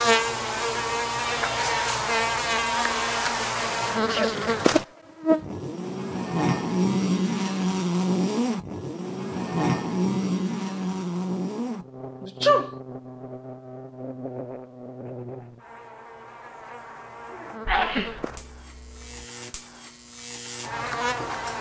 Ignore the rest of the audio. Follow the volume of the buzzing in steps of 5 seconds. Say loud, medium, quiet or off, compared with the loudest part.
loud, loud, medium, quiet, medium.